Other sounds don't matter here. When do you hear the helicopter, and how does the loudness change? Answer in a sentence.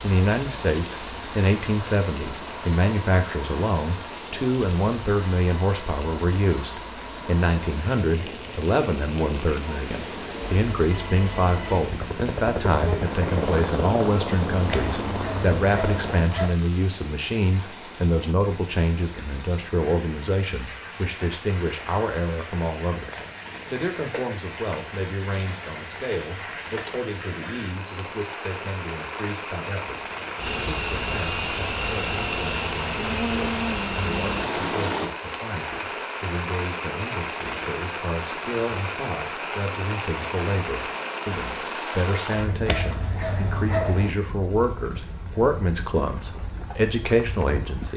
You can hear the helicopter from 0.0 to 16.3 s, getting louder; and from 30.4 to 35.1 s, at a steady volume.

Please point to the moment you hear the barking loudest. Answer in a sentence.
The loudest moment of the barking is at 44 seconds.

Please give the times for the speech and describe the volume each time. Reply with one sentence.
The speech can be heard from 0.0 to 47.9 s, getting quieter then louder.